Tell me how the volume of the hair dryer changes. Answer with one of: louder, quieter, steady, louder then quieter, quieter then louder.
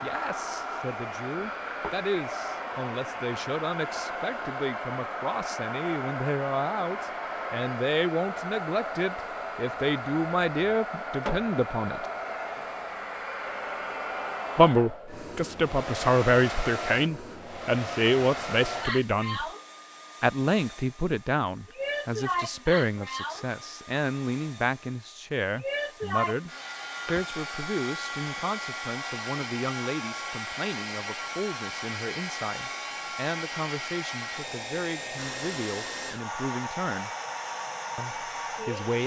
steady.